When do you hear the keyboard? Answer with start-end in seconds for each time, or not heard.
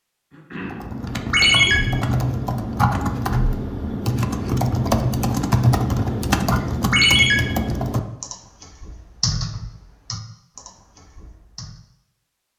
0.6-11.8.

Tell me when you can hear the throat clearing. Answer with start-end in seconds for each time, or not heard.
0.3-0.9.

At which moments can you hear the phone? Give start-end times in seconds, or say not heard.
1.3-1.8, 6.9-7.3.